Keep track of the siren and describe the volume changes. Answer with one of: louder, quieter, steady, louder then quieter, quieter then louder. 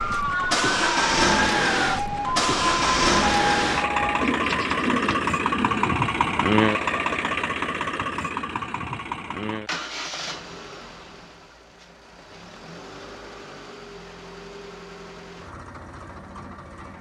steady.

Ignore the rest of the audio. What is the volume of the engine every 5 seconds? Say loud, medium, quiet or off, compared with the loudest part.
loud, loud, quiet, quiet.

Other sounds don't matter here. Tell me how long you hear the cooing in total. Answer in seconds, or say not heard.
2 s.